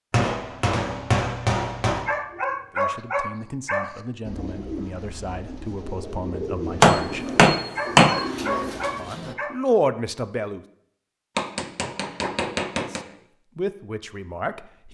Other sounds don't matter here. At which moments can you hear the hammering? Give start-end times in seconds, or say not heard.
0.1-2.1, 6.8-8.2, 11.3-13.0.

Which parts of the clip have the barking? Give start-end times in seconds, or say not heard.
2.0-4.0, 7.8-9.6.